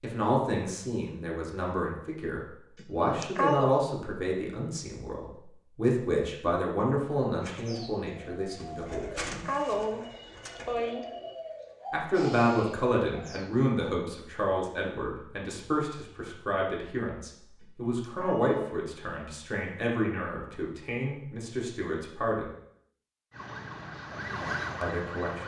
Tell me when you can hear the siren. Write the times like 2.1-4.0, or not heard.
23.3-25.4.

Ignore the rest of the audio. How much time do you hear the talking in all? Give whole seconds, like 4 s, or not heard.
21 s.